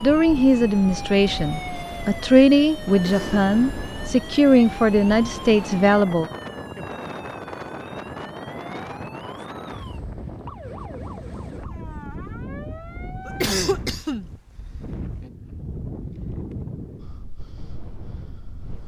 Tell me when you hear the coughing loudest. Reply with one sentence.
The loudest moment of the coughing is at 14 seconds.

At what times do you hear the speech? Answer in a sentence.
You can hear the speech from 0.0 to 6.2 s.